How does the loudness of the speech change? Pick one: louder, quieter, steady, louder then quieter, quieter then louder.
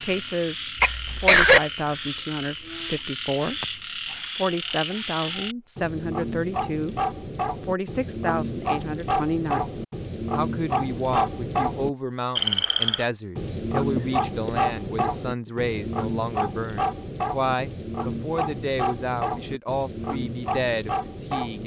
steady.